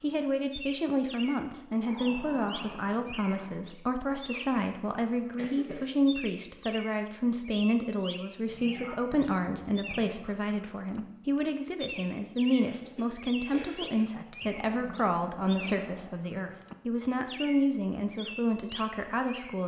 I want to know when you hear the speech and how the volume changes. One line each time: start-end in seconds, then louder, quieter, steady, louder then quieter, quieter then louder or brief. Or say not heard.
0.0-19.6 steady.